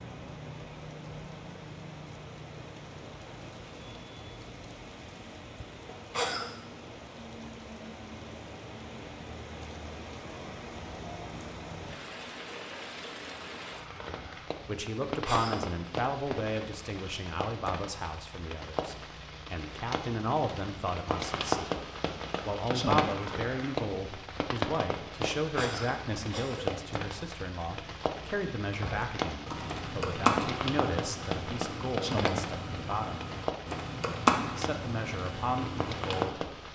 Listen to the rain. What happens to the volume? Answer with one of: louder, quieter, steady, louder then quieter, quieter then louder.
louder.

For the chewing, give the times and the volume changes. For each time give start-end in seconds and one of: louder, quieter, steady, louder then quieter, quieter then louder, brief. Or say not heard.
not heard.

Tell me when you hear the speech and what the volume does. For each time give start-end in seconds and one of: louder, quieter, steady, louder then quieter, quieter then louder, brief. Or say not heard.
14.1-21.9 quieter then louder
22.4-33.2 quieter
34.5-36.4 brief.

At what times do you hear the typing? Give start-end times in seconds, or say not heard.
28.7-36.3.